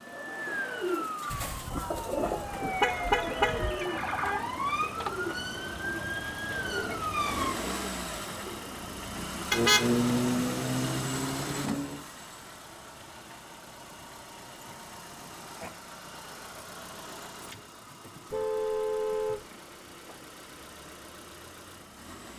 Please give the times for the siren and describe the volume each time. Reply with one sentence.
The siren can be heard from 0.0 to 7.6 s, at a steady volume.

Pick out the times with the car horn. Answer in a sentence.
The car horn can be heard from 1.3 to 3.9 s, from 9.5 to 12.0 s and from 18.3 to 19.4 s.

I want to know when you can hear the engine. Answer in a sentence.
You can hear the engine from 0.0 to 22.3 s.